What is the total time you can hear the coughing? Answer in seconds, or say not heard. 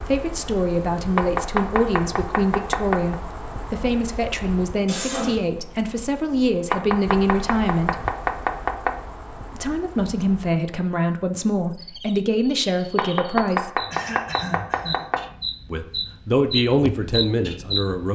2 s.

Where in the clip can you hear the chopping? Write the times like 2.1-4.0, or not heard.
1.1-3.1, 6.7-9.0, 12.9-15.2.